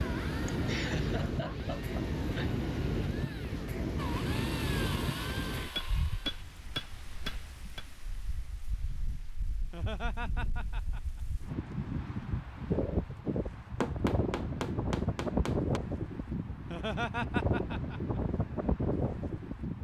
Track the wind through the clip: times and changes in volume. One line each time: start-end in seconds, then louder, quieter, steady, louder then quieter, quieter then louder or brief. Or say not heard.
0.0-19.7 quieter then louder.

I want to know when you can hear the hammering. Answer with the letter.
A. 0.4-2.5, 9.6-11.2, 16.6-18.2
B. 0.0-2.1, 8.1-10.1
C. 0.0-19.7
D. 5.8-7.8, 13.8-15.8
D.